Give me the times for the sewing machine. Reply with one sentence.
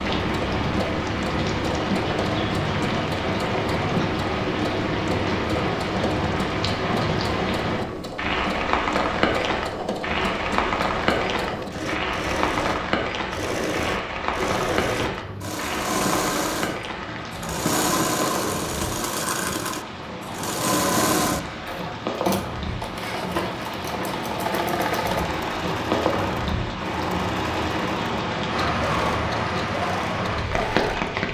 The sewing machine can be heard from 0.0 to 31.3 s.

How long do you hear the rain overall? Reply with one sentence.
The rain can be heard for 31 seconds in total.